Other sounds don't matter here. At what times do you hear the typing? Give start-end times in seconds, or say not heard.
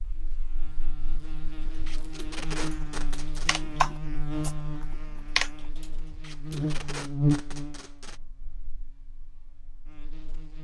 1.8-4.5, 5.3-6.9.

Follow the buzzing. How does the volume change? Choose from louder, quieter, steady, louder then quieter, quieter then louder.
louder then quieter.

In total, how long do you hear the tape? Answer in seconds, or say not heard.
4 s.